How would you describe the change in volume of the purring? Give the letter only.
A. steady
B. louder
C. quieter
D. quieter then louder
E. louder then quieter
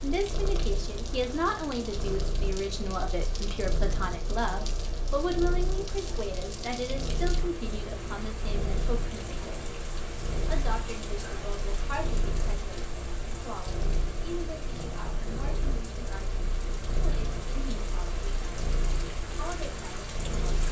A.